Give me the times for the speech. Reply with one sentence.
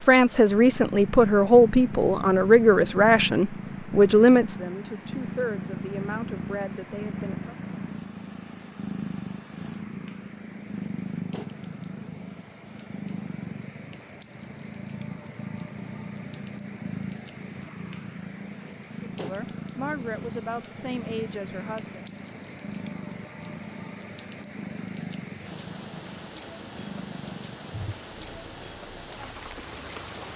The speech can be heard from 0.0 to 7.5 s and from 19.1 to 22.0 s.